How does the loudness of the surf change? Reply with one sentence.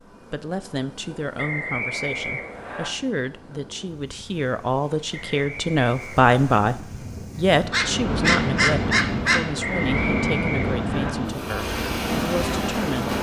The loudness of the surf goes up.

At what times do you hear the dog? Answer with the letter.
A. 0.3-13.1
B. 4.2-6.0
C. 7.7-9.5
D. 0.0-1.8
C.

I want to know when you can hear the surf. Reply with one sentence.
You can hear the surf from 0.0 to 13.1 s.